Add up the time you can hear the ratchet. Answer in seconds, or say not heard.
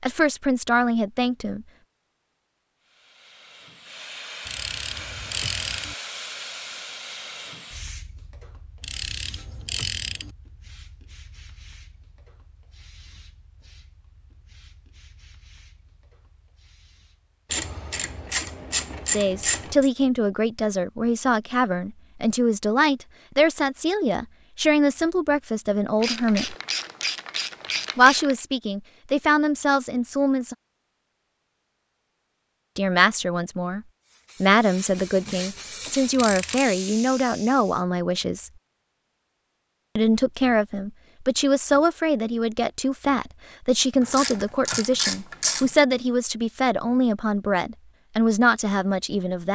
11 s.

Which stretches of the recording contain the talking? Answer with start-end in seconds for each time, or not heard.
0.0-1.6, 19.1-26.6, 27.9-30.6, 32.8-38.5, 40.0-49.5.